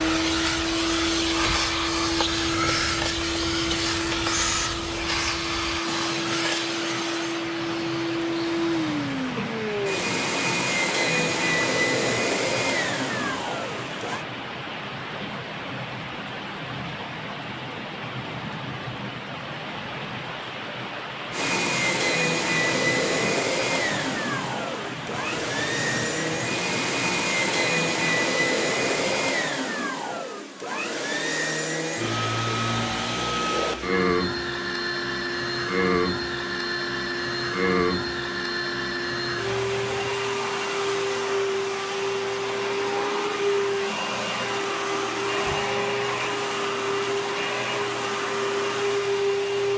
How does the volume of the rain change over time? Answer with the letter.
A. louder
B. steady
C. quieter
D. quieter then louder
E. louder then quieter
B.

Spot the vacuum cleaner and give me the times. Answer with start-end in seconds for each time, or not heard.
0.0-14.2, 21.3-49.7.